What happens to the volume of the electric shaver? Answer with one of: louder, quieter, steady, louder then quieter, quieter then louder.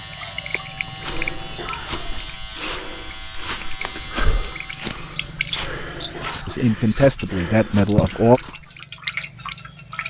steady.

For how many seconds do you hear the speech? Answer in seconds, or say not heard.
2 s.